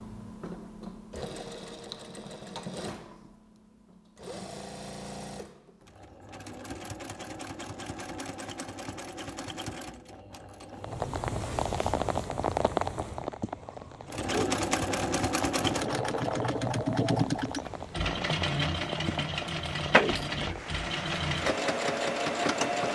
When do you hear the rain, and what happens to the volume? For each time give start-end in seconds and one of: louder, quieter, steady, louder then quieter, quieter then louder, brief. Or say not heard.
10.8-22.9 quieter.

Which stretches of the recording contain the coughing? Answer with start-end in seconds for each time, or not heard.
not heard.